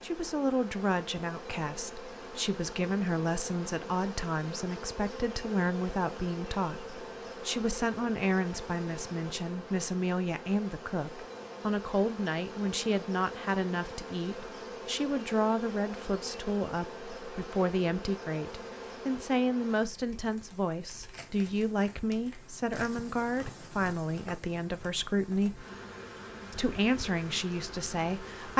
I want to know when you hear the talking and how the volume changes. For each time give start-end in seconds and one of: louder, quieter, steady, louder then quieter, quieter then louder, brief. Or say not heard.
0.0-25.6 steady
26.5-28.5 brief.